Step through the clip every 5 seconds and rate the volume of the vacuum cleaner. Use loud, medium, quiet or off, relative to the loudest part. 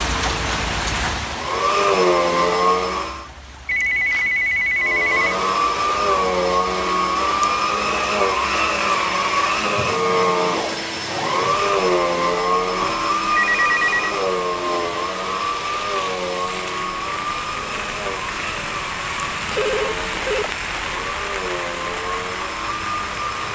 loud, loud, loud, medium, medium.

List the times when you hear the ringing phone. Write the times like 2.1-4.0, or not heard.
3.6-5.3, 12.8-14.2, 19.5-20.6.